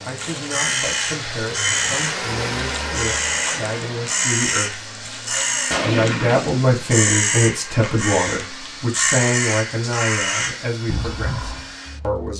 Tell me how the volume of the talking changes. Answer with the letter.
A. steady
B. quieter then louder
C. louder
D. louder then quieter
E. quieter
D.